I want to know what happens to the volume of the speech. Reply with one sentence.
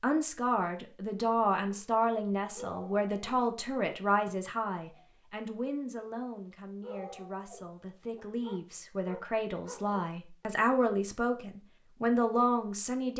The volume of the speech goes down, then up.